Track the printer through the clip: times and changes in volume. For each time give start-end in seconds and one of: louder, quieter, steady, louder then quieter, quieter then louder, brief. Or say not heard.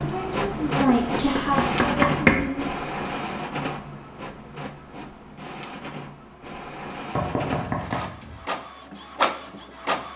0.0-10.1 quieter then louder.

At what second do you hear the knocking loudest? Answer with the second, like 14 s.
2 s.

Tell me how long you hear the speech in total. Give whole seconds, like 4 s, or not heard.
3 s.